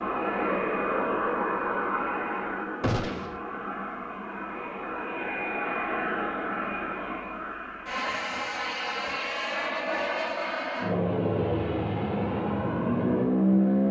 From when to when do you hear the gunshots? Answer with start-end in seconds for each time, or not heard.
2.8-3.4.